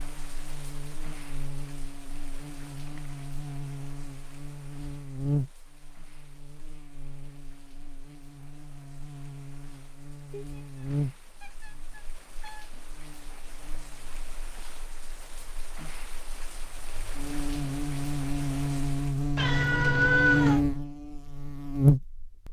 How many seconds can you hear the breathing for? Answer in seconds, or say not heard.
not heard.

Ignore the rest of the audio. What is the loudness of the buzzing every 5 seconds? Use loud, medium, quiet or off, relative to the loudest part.
quiet, quiet, quiet, medium, loud.